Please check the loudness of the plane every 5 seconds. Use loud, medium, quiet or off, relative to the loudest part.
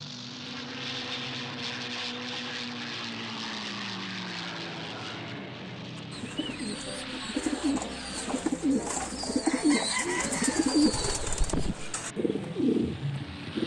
loud, medium, medium.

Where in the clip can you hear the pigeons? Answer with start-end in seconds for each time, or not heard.
6.0-13.6.